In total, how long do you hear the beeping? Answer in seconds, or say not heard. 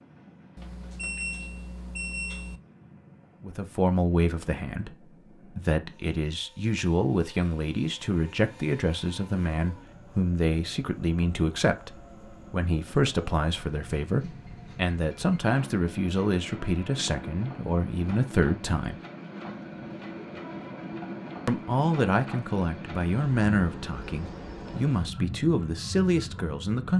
2 s.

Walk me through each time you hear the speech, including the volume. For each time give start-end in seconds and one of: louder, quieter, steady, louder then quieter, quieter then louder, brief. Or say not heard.
3.4-18.9 steady
21.4-26.9 quieter then louder.